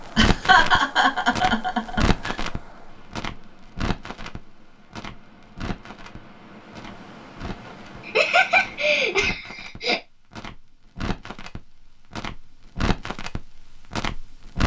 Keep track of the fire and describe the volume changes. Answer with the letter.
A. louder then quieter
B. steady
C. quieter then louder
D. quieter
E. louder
C.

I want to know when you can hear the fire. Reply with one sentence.
The fire can be heard from 0.0 to 14.6 s.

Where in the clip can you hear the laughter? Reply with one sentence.
You can hear the laughter from 0.1 to 2.4 s and from 8.1 to 10.0 s.